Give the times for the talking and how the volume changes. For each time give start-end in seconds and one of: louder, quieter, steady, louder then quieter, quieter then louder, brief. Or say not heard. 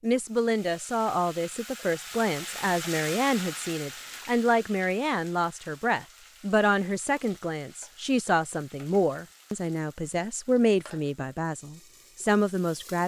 0.0-13.0 steady.